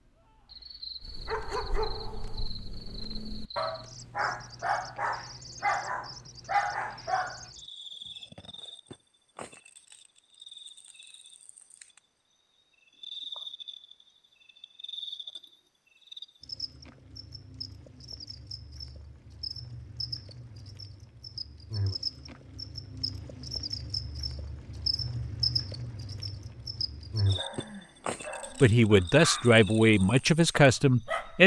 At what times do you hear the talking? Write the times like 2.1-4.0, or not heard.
28.6-31.4.